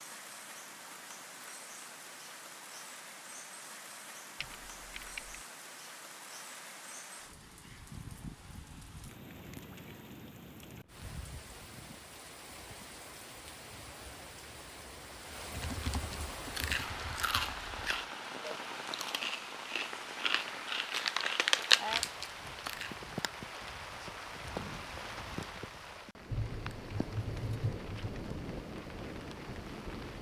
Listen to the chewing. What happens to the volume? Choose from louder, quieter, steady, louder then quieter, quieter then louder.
louder.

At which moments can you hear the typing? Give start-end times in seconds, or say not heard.
4.4-5.4, 15.5-17.9, 26.3-28.2.